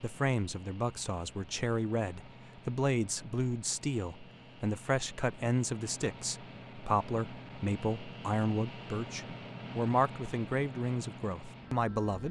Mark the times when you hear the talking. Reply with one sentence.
The talking can be heard from 0.0 to 12.2 s.